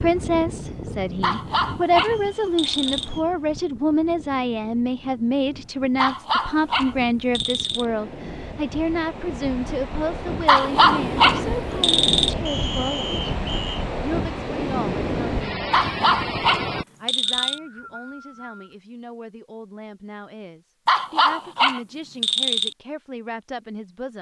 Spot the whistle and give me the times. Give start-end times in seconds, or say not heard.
2.0-3.4, 12.4-13.8, 16.9-18.8.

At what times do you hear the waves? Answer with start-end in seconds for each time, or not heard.
0.0-16.9.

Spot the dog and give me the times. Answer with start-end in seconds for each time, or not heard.
1.2-3.1, 6.0-7.8, 10.4-12.3, 15.7-17.6, 20.9-22.8.